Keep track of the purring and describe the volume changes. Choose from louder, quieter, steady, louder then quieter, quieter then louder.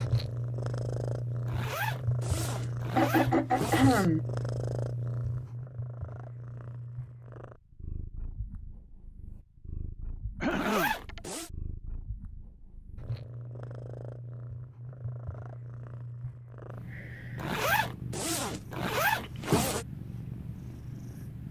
quieter then louder.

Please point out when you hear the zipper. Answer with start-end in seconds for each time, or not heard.
1.4-4.0, 10.4-11.5, 17.4-19.9.